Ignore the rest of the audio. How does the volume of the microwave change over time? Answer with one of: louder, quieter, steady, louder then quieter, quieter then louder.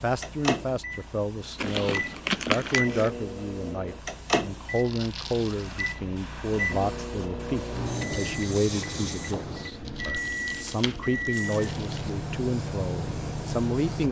steady.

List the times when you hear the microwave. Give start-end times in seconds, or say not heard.
0.1-14.0.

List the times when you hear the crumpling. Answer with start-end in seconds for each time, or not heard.
1.6-3.1, 4.8-6.0, 9.8-12.1.